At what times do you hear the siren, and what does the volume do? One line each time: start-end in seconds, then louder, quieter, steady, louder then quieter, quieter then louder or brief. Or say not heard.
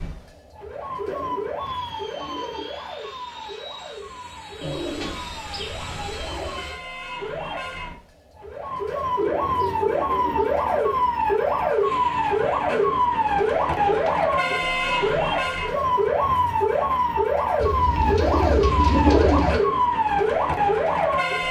0.0-21.4 louder.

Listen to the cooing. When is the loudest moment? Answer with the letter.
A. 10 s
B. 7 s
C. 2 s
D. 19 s
D.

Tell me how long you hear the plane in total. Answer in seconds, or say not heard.
5 s.